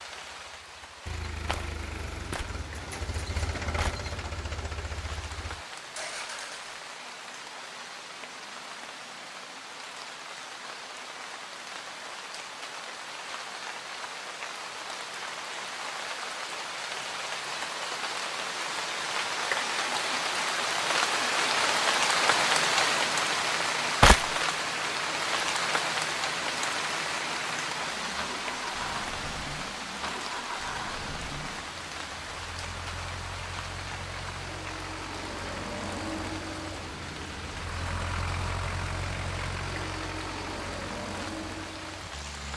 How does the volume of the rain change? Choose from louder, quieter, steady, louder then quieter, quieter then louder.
louder then quieter.